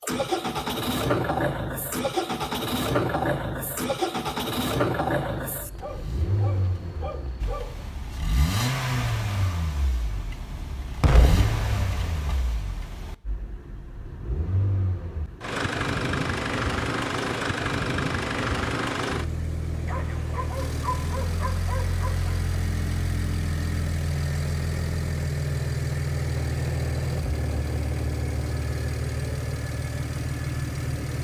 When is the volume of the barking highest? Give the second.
21 s.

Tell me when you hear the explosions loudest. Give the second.
11 s.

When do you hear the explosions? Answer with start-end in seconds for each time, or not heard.
11.0-12.5.